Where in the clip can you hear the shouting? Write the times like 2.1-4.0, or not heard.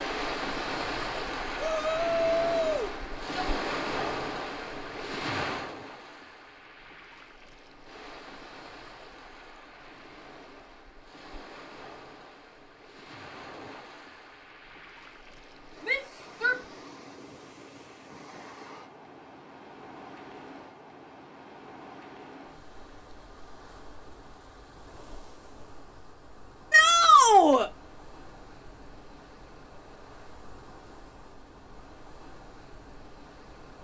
1.6-3.5, 15.8-16.6, 26.7-27.7.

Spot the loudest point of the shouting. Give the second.
27 s.